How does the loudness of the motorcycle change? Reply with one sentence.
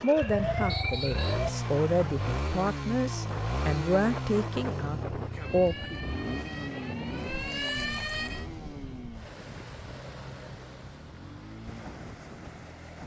The loudness of the motorcycle goes down.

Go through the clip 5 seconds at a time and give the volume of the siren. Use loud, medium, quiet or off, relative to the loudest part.
loud, loud, off.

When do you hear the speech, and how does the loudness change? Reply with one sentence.
You can hear the speech from 0.0 to 6.0 s, getting louder then quieter.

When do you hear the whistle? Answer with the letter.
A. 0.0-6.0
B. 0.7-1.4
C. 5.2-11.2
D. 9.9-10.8
B.